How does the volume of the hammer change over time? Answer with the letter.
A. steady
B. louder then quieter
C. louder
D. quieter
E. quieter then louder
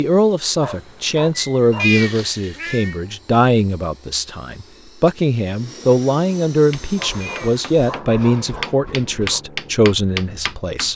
C.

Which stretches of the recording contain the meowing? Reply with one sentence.
You can hear the meowing from 1.8 to 3.0 s and from 7.2 to 7.7 s.